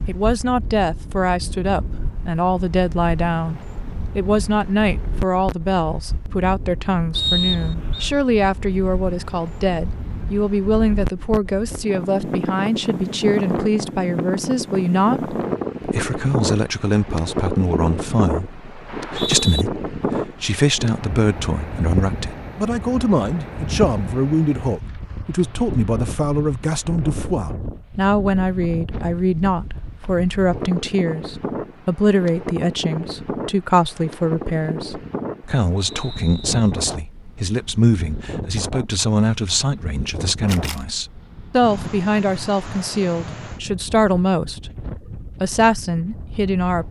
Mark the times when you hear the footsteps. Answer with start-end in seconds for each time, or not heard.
not heard.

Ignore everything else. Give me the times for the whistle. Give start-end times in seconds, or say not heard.
7.2-8.1, 18.9-19.6, 35.9-36.5.